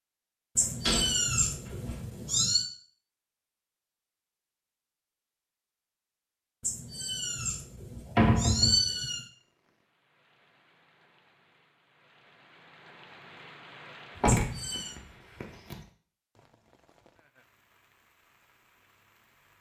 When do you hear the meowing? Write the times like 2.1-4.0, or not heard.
0.6-2.6, 6.6-9.2, 14.2-14.9.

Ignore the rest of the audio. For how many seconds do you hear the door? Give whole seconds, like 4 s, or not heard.
3 s.